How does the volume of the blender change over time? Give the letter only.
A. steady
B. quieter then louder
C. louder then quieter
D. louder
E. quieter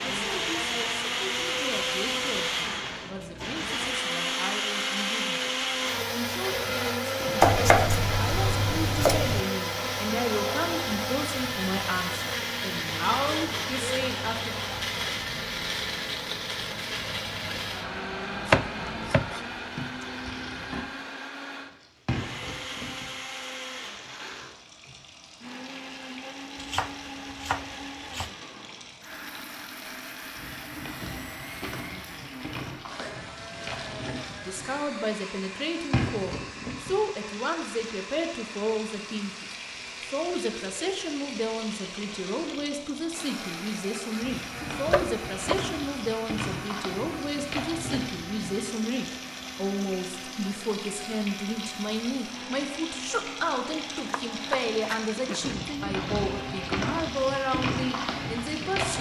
E.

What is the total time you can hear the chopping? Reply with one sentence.
The chopping can be heard for 8 seconds in total.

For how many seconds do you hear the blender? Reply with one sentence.
The blender can be heard for 59 seconds in total.